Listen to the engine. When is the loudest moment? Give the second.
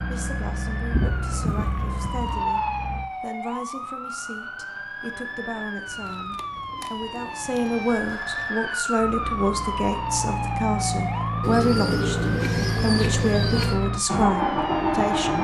15 s.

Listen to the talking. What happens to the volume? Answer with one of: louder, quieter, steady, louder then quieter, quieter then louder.
louder.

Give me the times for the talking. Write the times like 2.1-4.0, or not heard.
0.0-15.3.